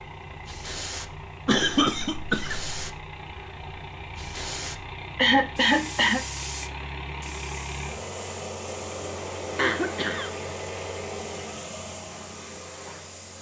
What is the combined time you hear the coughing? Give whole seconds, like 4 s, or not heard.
3 s.